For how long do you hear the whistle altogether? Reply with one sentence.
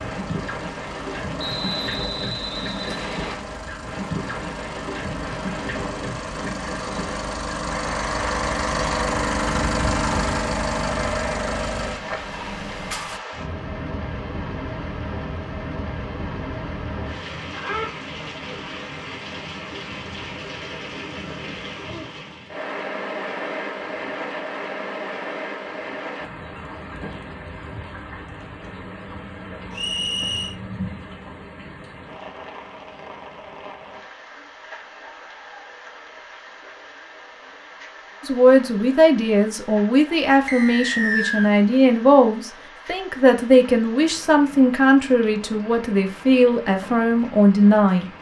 You can hear the whistle for 4 seconds altogether.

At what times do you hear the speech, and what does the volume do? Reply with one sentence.
The speech can be heard from 38.2 to 48.0 s, at a steady volume.